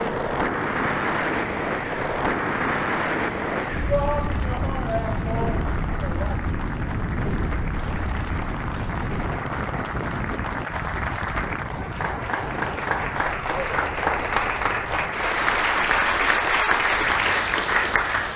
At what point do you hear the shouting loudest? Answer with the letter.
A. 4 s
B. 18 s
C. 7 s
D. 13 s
A.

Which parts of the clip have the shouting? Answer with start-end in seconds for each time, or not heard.
3.9-6.5.